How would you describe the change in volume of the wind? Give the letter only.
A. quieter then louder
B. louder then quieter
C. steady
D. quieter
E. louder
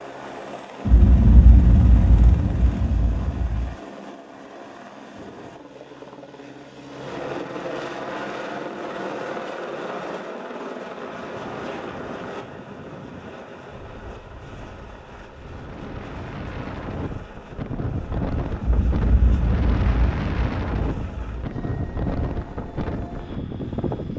E.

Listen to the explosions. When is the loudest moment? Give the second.
1 s.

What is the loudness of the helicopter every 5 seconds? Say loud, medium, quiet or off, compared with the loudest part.
medium, loud, loud, medium, medium.